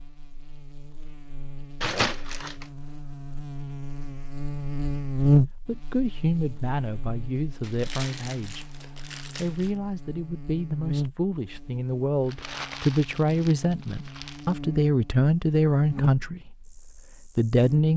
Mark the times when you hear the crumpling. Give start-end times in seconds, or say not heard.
1.8-2.7, 7.6-9.8, 12.2-14.6.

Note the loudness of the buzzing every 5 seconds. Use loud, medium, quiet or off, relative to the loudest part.
medium, loud, medium, medium.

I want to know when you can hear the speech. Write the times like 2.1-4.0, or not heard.
5.7-17.9.